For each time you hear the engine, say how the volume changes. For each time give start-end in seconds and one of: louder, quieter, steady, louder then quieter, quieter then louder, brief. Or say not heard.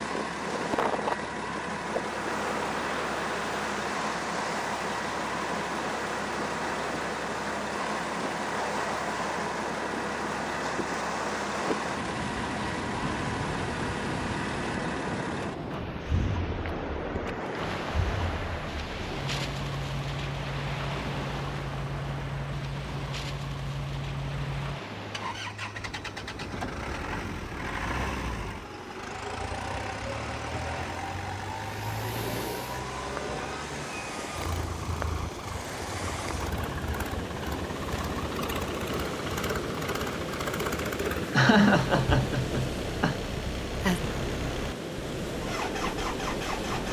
0.0-46.8 steady.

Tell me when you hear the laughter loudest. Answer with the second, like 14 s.
42 s.